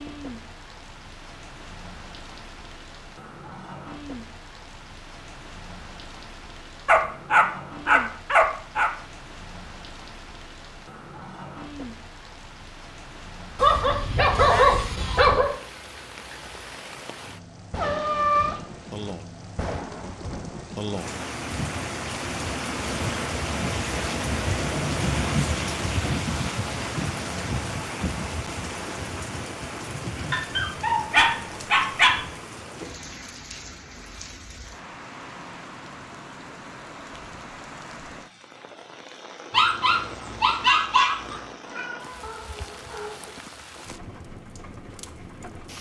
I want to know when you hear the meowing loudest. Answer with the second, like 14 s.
18 s.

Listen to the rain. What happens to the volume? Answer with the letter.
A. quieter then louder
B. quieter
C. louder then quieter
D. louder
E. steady
C.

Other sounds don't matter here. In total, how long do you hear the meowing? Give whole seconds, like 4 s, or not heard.
3 s.